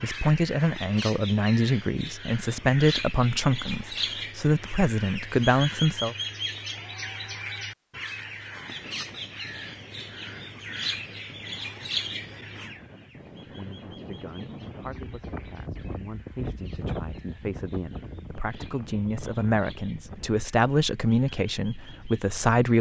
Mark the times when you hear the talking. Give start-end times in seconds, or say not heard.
0.0-6.2, 13.1-22.7.